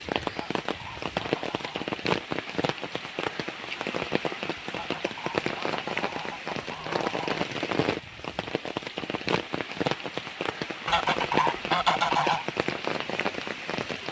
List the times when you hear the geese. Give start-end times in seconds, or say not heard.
0.3-1.9, 4.7-7.5, 10.8-12.4.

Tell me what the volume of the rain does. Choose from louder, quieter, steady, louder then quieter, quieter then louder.
steady.